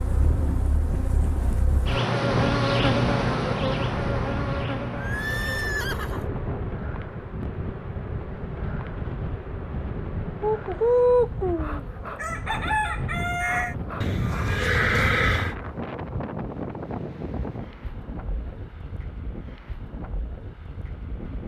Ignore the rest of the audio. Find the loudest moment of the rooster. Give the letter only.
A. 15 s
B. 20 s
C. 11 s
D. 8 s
C.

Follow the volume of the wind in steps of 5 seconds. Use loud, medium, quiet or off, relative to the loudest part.
loud, loud, loud, loud, medium.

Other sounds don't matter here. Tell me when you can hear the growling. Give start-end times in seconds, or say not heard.
not heard.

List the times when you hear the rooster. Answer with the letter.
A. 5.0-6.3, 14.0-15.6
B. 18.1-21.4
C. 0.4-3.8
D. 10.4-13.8
D.